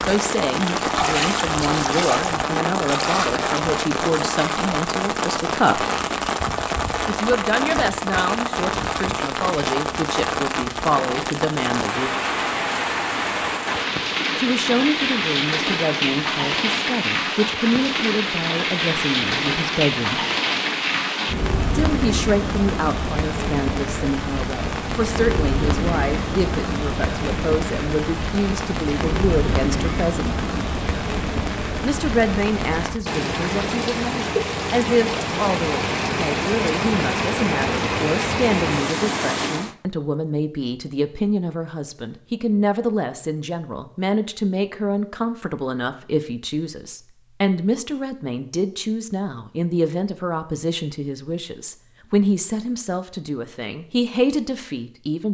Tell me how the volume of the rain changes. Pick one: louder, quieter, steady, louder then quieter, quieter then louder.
steady.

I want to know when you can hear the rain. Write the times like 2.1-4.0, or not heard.
0.0-39.8.